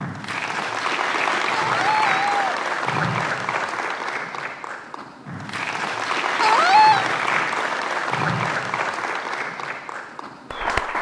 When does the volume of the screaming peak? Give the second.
7 s.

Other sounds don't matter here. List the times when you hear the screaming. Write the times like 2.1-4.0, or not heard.
1.5-2.6, 6.4-7.0.